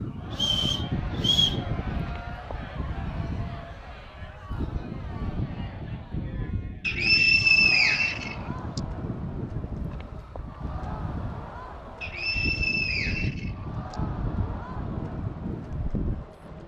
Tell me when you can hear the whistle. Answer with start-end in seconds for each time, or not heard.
0.3-1.6, 6.8-8.8, 12.0-13.9.